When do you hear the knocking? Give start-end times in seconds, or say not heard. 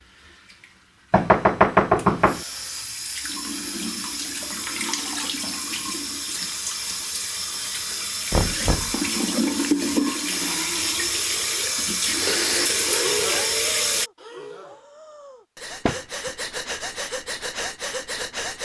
1.1-2.4, 8.3-8.9, 15.8-16.3.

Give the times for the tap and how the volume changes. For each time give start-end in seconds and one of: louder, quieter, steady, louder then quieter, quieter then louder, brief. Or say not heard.
0.0-14.1 louder.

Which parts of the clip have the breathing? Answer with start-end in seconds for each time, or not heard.
12.1-18.5.